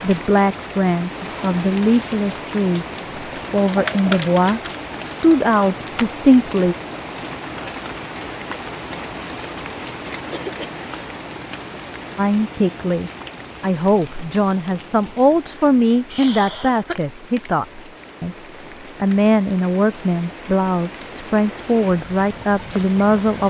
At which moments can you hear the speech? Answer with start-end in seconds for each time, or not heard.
0.0-6.8, 12.2-18.4, 19.0-23.4.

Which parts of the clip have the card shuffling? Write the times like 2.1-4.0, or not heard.
3.6-4.8.